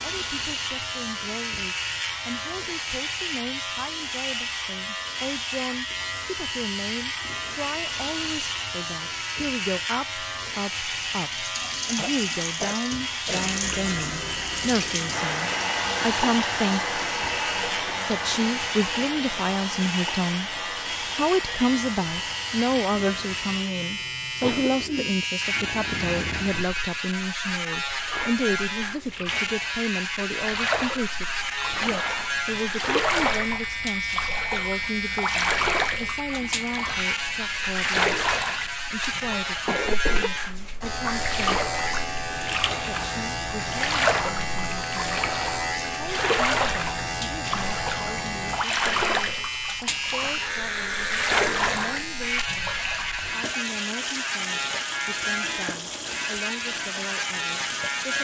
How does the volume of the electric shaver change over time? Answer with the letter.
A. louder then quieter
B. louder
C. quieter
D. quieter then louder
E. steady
E.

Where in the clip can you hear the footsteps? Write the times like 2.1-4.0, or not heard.
not heard.